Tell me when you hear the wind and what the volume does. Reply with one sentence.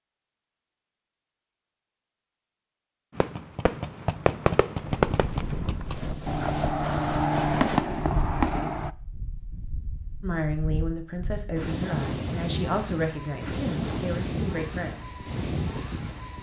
You can hear the wind from 4.8 to 16.3 s, getting quieter then louder.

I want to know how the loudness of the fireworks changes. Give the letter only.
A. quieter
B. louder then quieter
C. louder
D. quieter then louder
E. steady
D.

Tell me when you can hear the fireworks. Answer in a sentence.
You can hear the fireworks from 3.1 to 8.9 s.